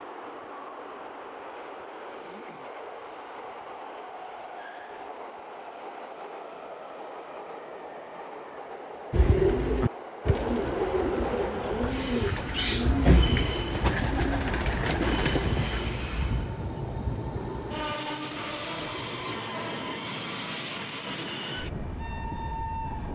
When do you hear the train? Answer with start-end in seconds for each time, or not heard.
0.0-23.1.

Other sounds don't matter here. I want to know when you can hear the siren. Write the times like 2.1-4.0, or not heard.
not heard.